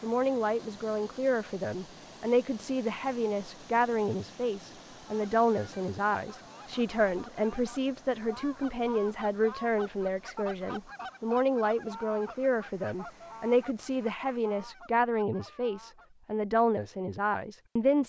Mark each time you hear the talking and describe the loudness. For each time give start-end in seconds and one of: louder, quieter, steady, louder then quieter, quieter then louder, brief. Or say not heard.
0.0-18.0 steady.